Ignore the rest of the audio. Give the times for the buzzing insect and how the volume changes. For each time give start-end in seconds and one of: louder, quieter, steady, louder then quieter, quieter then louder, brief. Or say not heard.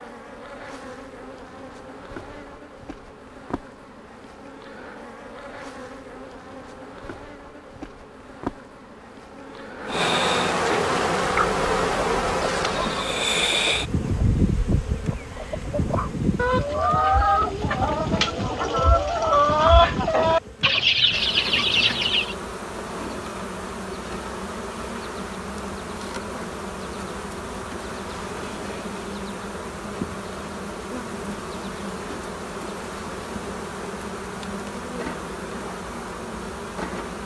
0.0-37.2 louder then quieter.